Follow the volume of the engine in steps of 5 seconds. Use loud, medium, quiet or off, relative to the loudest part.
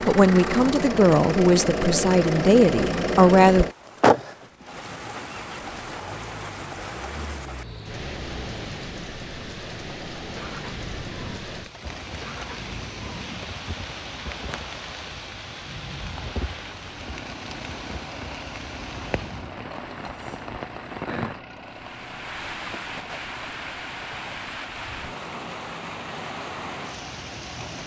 loud, quiet, quiet, quiet, quiet, quiet.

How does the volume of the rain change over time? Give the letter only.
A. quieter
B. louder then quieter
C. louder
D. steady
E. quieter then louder
D.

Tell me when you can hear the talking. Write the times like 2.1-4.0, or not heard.
0.0-3.6.